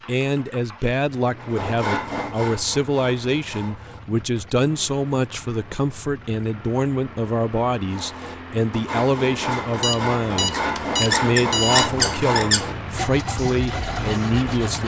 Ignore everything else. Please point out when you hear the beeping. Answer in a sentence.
The beeping can be heard from 9.8 to 11.9 s.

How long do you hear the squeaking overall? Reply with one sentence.
You can hear the squeaking for 2 seconds altogether.